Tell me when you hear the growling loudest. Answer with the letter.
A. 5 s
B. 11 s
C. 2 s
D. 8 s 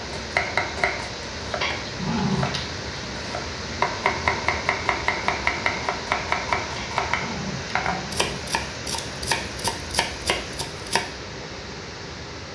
C.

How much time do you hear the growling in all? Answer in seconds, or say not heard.
3 s.